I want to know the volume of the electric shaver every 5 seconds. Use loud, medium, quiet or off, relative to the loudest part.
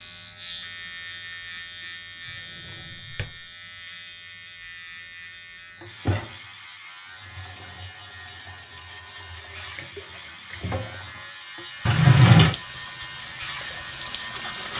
loud, medium, loud.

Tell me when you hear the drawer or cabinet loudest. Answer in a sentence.
The volume of the drawer or cabinet peaks at 12 seconds.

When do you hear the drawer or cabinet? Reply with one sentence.
You can hear the drawer or cabinet from 2.2 to 3.5 s and from 11.8 to 12.6 s.